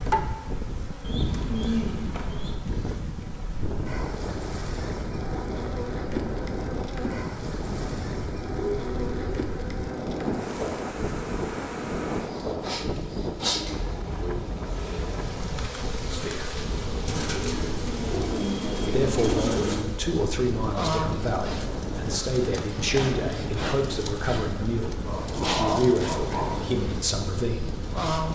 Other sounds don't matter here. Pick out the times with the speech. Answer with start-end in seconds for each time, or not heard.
16.1-16.6, 18.8-27.8.